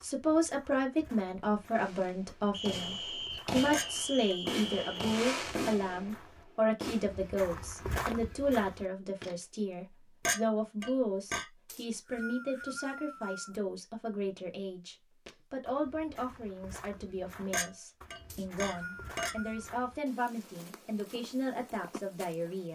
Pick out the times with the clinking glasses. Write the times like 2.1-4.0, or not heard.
3.7-4.3, 10.2-11.4, 17.5-19.4.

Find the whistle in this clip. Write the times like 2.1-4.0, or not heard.
2.5-5.2, 11.7-13.6, 18.3-19.7.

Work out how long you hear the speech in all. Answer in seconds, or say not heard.
23 s.